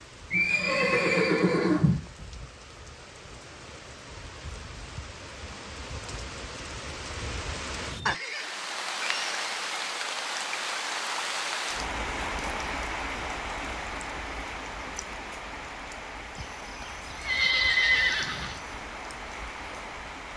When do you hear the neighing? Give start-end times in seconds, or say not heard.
0.3-2.1, 8.1-9.9, 16.4-18.8.